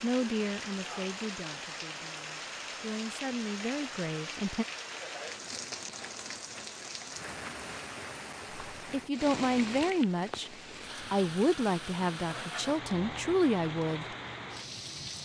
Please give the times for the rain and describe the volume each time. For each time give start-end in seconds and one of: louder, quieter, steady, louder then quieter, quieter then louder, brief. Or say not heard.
0.0-15.2 steady.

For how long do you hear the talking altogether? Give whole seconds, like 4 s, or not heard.
10 s.